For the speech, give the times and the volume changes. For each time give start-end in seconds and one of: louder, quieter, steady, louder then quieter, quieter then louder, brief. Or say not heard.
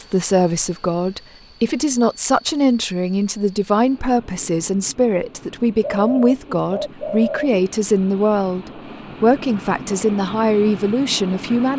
0.0-11.7 steady.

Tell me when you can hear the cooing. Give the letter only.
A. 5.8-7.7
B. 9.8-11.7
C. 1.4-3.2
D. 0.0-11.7
A.